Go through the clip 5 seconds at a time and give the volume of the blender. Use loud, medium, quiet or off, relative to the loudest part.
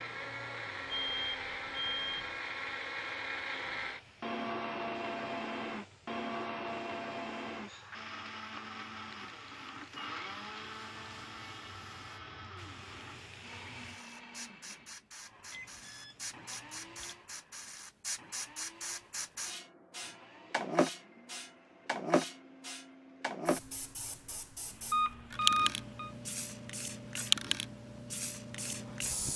loud, loud, medium, quiet, quiet, quiet.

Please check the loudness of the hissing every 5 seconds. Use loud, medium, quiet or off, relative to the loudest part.
quiet, quiet, quiet, medium, loud, loud.